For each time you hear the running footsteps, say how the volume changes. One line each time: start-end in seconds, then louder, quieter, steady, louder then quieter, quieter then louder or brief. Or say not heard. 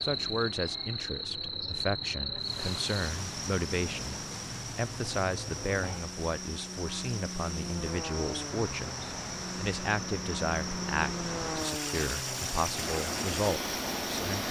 not heard.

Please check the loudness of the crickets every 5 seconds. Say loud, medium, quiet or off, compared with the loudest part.
loud, medium, loud.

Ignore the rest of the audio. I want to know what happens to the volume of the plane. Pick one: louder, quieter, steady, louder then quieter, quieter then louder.
louder.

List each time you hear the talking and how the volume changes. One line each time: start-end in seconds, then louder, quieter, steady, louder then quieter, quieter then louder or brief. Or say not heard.
0.0-14.3 steady.